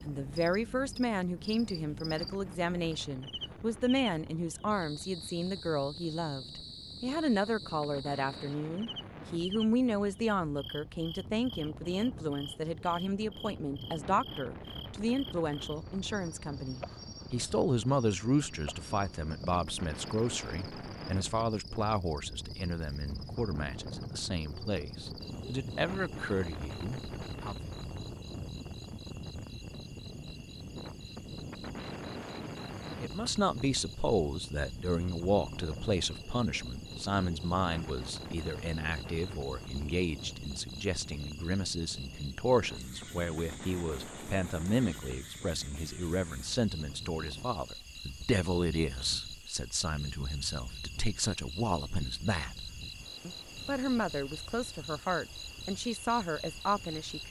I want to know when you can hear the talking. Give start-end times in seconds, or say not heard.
0.0-27.7, 33.0-57.2.